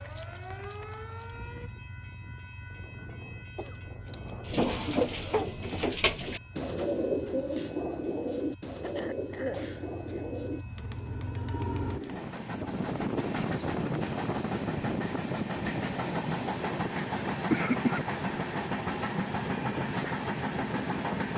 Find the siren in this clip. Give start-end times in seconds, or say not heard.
0.0-1.7.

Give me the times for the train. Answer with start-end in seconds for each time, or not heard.
0.0-21.3.